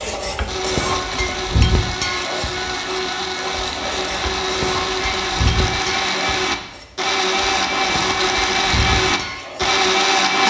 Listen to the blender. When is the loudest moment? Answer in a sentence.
The volume of the blender peaks at 10 seconds.